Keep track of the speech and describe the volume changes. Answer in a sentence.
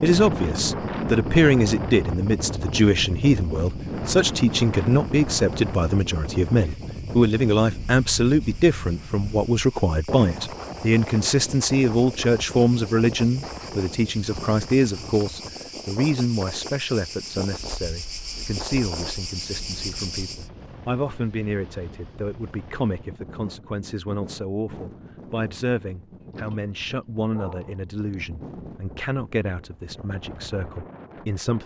The volume of the speech goes down.